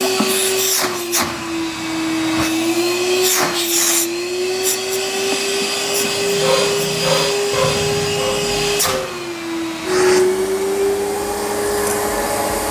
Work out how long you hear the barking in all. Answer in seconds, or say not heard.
3 s.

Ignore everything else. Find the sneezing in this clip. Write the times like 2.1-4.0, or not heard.
not heard.